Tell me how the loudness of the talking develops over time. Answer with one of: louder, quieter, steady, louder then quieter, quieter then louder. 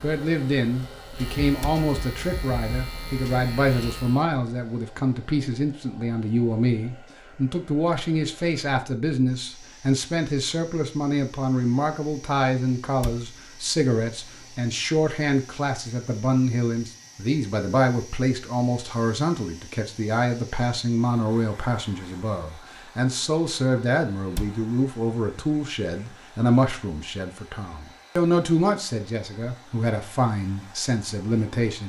steady.